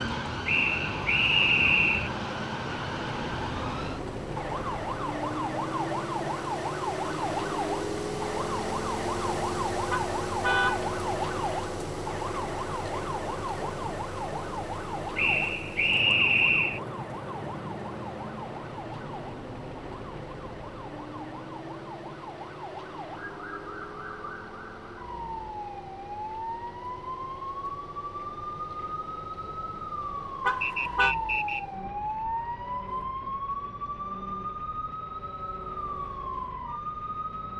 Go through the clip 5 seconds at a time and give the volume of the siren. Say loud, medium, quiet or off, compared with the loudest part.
loud, loud, loud, medium, medium, loud, loud, loud.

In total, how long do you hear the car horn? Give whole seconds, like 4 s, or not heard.
2 s.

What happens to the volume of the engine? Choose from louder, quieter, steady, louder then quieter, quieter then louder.
quieter.